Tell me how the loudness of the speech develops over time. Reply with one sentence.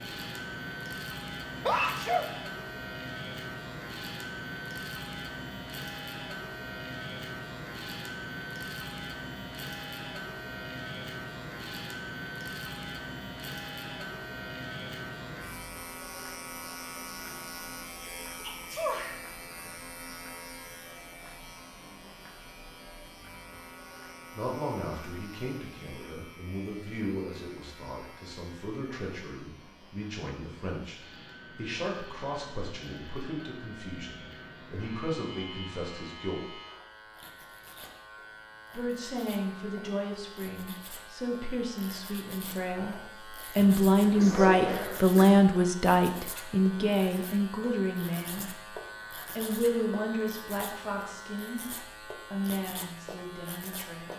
The volume of the speech goes up, then down.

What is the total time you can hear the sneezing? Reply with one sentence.
You can hear the sneezing for 3 seconds altogether.